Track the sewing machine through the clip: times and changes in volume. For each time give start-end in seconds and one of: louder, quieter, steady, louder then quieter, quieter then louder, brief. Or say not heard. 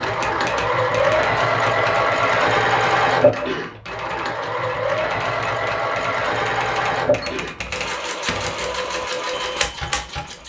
0.0-10.4 quieter.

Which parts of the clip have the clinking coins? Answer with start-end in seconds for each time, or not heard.
not heard.